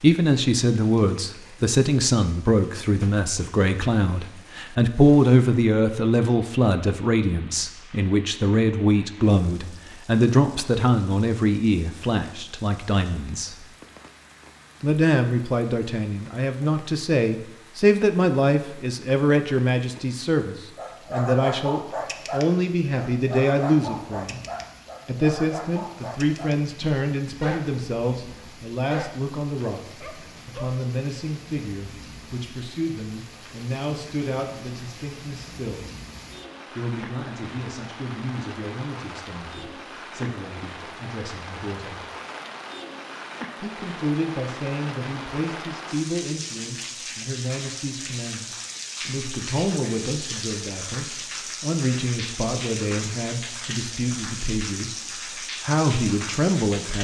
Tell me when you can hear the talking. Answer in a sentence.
You can hear the talking from 0.0 to 13.6 s, from 14.8 to 24.4 s, from 25.1 to 35.9 s, from 36.7 to 42.0 s and from 43.6 to 56.9 s.